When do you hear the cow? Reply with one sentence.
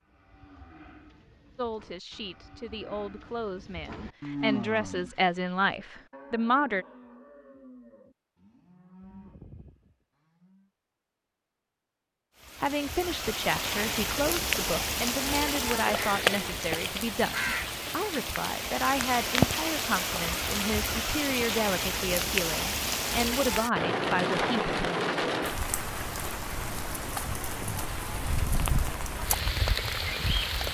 The cow can be heard from 0.0 to 10.7 s.